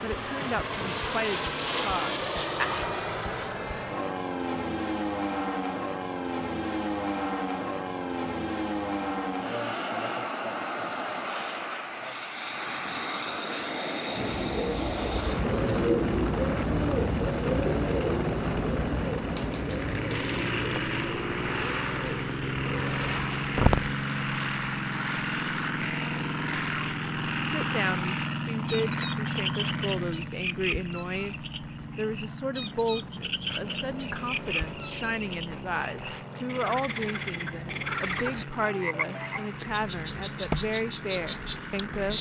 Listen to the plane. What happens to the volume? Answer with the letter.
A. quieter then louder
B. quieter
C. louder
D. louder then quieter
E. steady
B.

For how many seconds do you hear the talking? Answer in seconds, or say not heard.
17 s.